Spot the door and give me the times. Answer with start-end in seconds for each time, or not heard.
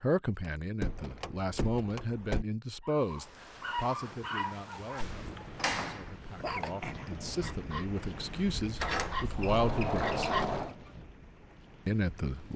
0.8-2.5, 4.7-6.8, 8.8-10.8.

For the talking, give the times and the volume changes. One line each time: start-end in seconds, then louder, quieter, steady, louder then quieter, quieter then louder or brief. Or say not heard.
0.0-10.3 quieter then louder
11.8-12.5 brief.